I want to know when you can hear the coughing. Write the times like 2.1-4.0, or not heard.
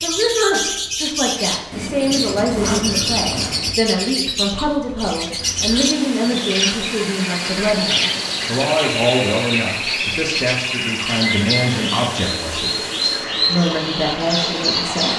not heard.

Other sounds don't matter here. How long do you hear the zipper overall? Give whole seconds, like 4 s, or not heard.
2 s.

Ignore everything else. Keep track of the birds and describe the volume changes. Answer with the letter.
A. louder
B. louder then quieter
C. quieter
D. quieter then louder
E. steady
E.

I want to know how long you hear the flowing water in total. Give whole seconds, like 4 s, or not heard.
10 s.